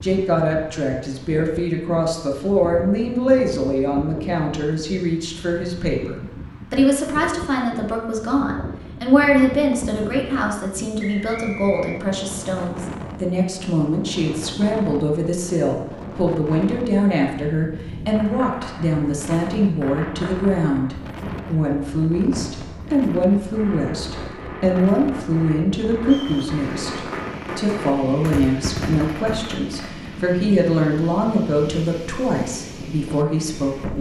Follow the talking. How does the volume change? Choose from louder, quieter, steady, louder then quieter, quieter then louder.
steady.